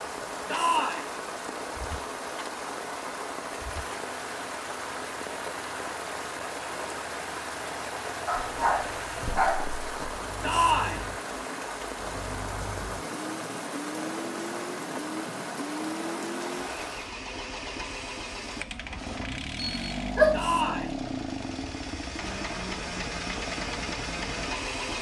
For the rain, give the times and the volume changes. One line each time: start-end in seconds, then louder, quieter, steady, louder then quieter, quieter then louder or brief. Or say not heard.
0.0-17.1 steady.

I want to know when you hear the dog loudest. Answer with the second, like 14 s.
20 s.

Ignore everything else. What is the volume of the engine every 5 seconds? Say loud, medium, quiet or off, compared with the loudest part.
quiet, medium, medium, loud, loud.